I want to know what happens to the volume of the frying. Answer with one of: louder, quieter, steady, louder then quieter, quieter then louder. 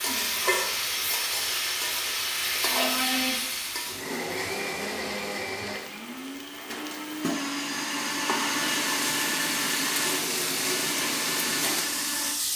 quieter then louder.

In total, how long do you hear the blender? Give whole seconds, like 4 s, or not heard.
12 s.